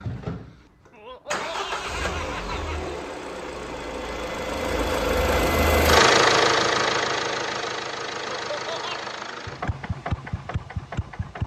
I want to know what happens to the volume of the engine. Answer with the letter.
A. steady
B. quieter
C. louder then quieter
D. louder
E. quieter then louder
C.